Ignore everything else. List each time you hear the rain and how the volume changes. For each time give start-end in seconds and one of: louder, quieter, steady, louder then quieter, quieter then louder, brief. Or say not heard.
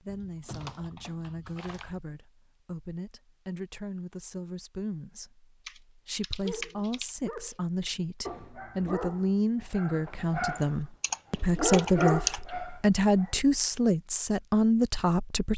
not heard.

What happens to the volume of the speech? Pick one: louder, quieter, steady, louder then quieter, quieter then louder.
louder.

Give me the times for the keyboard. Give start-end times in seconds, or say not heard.
0.1-2.0, 5.7-7.5, 10.6-12.4.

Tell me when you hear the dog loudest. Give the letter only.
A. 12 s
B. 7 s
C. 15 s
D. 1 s
A.